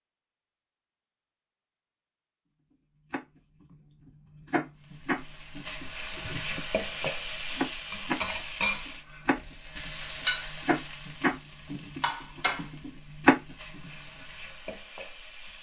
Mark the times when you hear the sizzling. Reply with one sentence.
The sizzling can be heard from 5.0 to 15.5 s.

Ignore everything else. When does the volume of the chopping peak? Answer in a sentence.
The volume of the chopping peaks at 13 seconds.